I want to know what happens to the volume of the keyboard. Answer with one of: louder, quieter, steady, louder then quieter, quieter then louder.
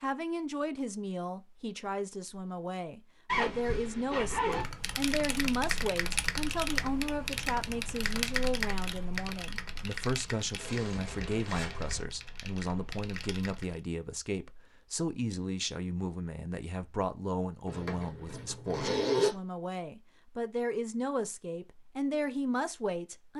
quieter.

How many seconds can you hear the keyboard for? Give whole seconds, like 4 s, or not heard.
9 s.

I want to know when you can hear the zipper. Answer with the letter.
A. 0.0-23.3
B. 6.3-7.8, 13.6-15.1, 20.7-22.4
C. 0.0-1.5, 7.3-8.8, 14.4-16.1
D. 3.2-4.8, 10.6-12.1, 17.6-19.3
D.